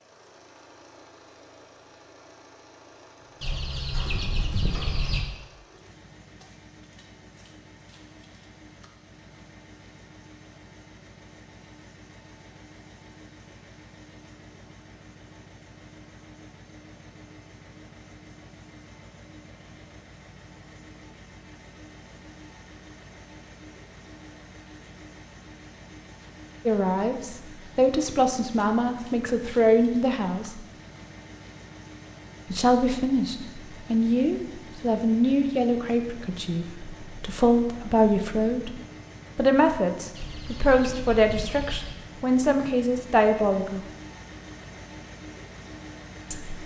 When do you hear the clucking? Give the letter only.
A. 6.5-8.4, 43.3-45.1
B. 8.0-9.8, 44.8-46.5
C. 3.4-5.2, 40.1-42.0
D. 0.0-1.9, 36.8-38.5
C.